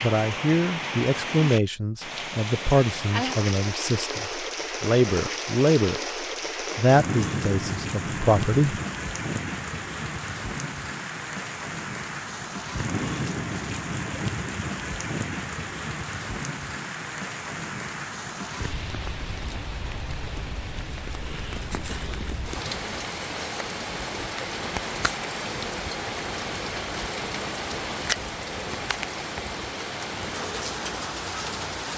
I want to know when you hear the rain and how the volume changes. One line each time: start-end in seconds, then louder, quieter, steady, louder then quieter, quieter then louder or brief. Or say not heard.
0.0-31.9 steady.